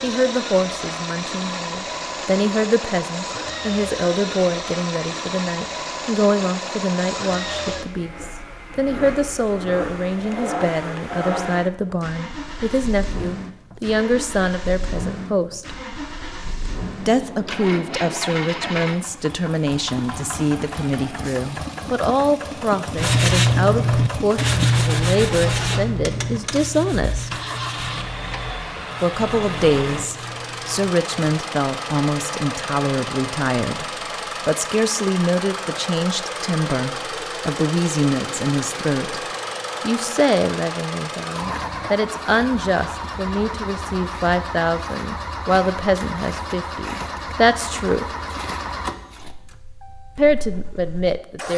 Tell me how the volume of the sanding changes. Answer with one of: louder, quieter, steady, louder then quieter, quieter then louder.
quieter.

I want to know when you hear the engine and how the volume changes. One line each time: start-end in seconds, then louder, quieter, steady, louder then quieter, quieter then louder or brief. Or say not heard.
0.0-51.5 steady.